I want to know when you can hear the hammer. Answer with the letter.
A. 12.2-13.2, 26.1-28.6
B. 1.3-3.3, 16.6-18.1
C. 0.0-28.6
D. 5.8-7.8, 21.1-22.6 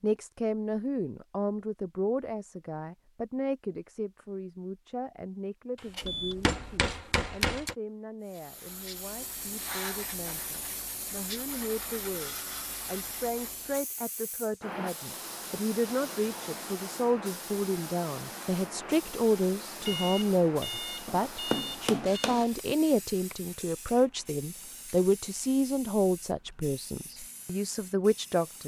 D.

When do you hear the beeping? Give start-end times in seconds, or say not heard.
6.0-6.9, 19.8-22.4.